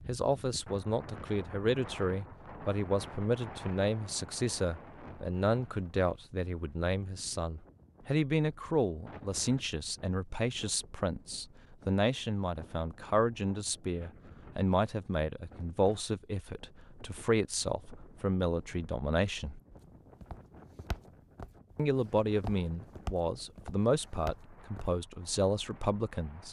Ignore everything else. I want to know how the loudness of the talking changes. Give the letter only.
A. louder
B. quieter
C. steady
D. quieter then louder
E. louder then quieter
C.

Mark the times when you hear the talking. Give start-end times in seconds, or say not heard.
0.1-19.6, 21.8-26.4.